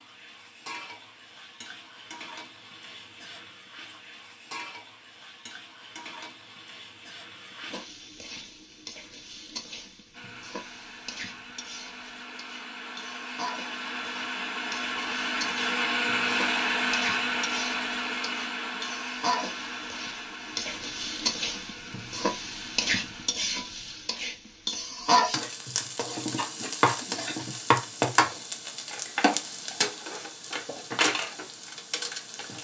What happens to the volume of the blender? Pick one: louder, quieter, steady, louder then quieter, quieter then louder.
louder then quieter.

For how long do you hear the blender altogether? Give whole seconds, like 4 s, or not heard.
13 s.